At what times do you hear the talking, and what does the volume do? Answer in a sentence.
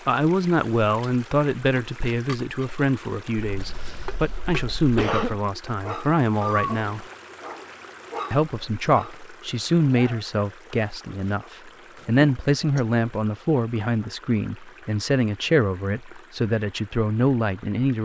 You can hear the talking from 0.1 to 7.0 s, getting quieter then louder; and from 8.3 to 18.0 s, at a steady volume.